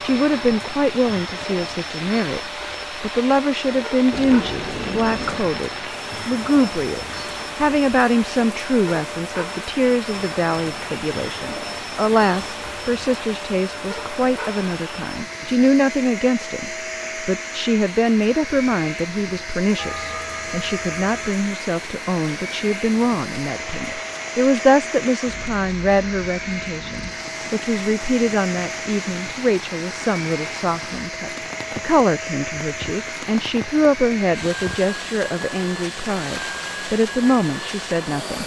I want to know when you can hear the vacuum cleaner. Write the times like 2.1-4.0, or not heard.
0.0-38.4.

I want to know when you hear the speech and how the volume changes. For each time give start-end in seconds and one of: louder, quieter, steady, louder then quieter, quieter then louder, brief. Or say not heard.
0.0-2.4 brief
3.0-38.4 steady.